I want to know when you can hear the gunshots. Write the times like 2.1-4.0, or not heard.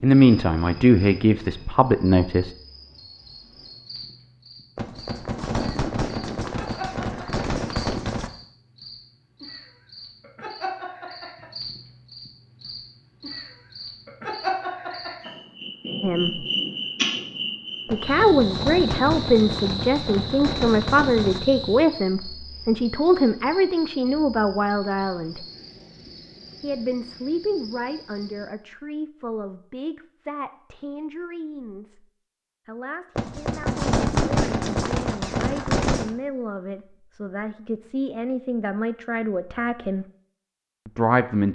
4.8-8.3, 17.9-21.4, 33.1-36.1.